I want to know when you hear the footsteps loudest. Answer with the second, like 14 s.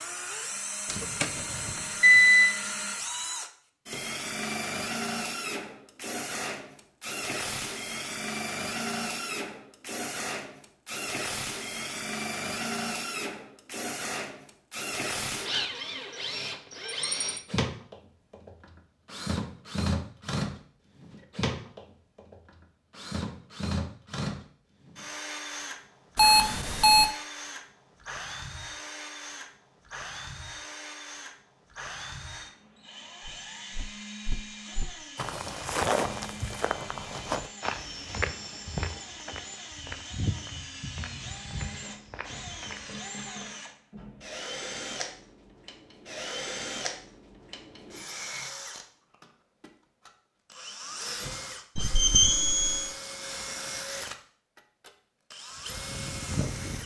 36 s.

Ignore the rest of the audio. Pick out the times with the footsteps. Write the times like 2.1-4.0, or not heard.
33.2-43.0.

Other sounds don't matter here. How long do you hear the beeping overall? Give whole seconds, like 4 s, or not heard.
4 s.